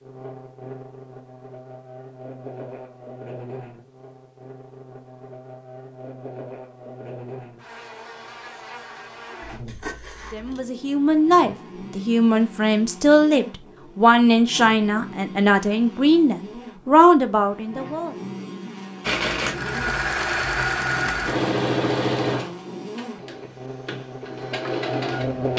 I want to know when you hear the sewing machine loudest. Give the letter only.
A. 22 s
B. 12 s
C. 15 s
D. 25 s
A.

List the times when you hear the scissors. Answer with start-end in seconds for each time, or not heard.
9.4-10.7.